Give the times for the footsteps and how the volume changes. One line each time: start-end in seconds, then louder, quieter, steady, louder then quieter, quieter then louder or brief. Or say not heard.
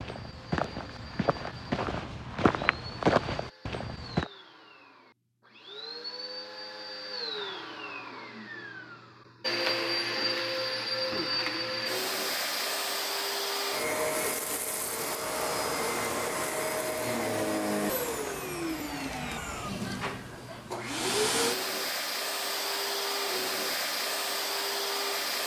0.0-4.3 louder then quieter.